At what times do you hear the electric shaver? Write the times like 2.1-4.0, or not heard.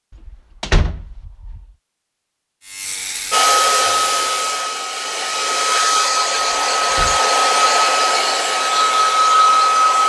2.6-4.5.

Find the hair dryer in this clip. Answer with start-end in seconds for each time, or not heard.
3.3-10.0.